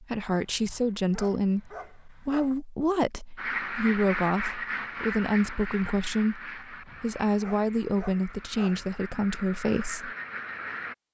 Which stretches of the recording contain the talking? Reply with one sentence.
You can hear the talking from 0.0 to 10.1 s.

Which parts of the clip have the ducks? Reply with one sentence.
You can hear the ducks from 3.4 to 10.9 s.